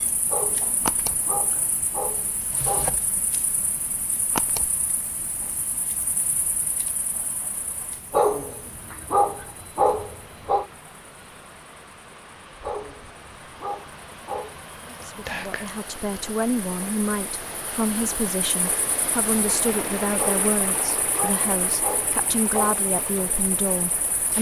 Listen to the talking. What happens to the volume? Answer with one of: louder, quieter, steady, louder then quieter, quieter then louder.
steady.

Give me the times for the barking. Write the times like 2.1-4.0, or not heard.
0.3-3.0, 8.1-10.7, 12.6-14.6, 20.1-22.8.